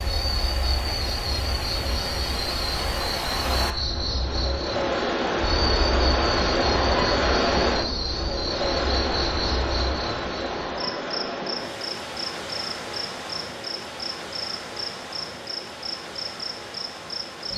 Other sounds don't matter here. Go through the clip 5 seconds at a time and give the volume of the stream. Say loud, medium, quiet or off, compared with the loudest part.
medium, loud, medium, quiet.